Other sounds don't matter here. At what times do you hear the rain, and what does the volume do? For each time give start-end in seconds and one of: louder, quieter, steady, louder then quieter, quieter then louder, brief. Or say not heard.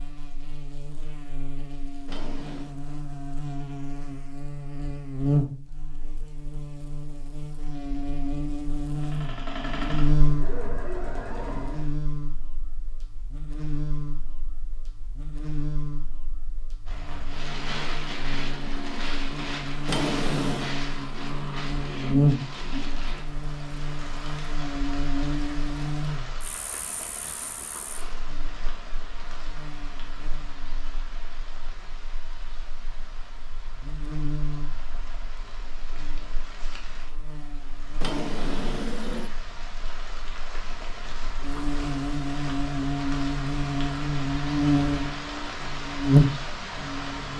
16.9-47.3 quieter then louder.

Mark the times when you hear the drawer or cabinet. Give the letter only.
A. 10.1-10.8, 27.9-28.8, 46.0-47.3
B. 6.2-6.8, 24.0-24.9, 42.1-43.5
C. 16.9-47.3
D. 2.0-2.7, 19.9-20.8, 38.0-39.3
D.